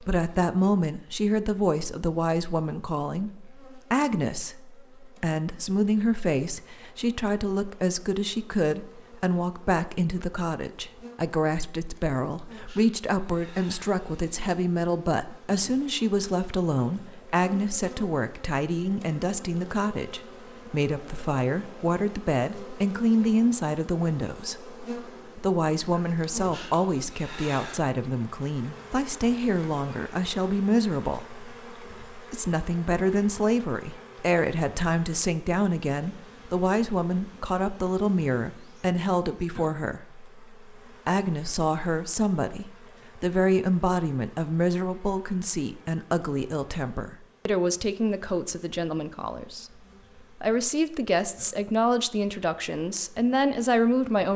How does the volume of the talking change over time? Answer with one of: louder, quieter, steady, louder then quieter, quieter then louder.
steady.